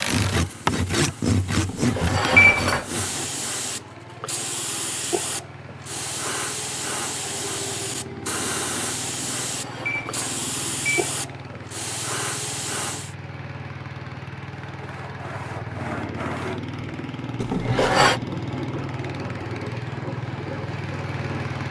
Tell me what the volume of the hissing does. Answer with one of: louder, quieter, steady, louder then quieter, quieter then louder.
louder.